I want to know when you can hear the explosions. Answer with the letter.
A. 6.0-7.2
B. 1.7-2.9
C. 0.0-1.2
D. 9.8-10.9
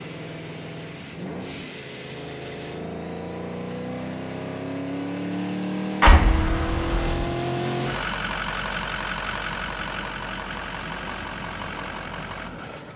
A.